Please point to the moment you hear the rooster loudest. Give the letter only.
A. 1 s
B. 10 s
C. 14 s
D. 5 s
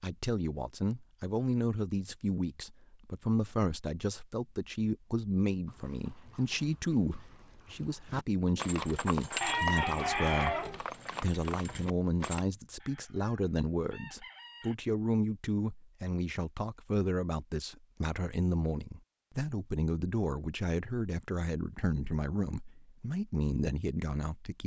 B.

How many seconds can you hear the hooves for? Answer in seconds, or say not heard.
7 s.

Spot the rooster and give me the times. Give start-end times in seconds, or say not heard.
9.4-10.8, 12.8-14.8.